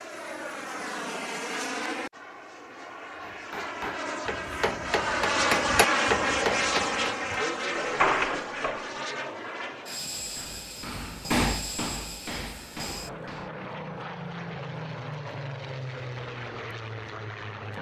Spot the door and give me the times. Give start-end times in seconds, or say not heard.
7.8-8.9.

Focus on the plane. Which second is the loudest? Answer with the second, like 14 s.
6 s.